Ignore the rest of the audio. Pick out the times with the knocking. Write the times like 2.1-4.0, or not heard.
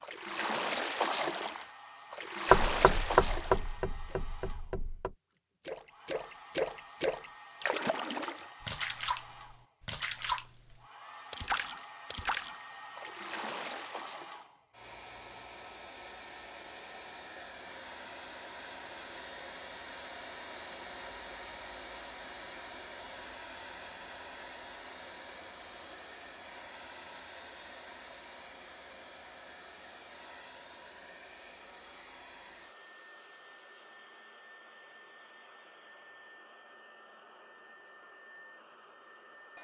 2.5-5.1.